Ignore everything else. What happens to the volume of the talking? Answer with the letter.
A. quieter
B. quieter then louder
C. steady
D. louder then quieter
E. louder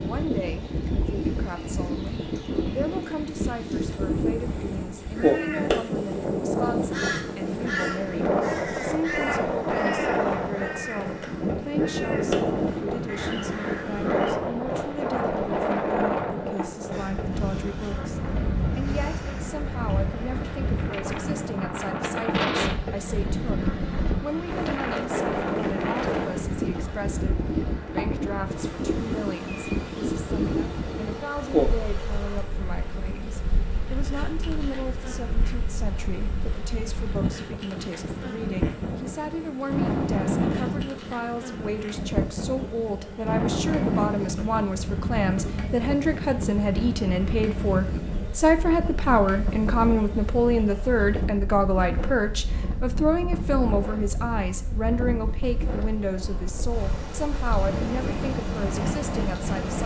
E.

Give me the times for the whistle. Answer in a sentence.
You can't hear the whistle here.